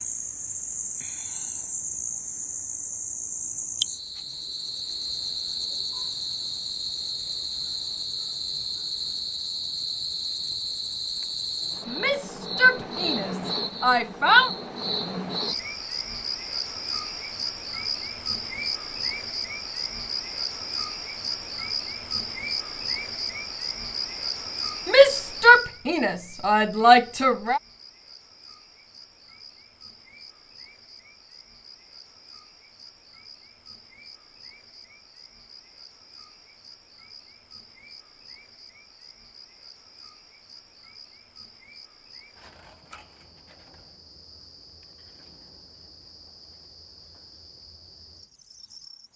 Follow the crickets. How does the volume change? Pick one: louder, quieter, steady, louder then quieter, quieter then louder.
quieter.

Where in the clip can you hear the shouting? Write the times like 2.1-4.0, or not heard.
11.8-14.5, 24.9-27.6.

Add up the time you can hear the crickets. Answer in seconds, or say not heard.
49 s.